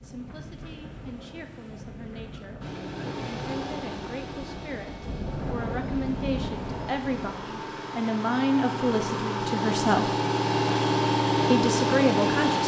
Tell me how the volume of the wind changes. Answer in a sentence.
The loudness of the wind goes up.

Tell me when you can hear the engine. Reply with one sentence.
You can hear the engine from 2.6 to 12.6 s.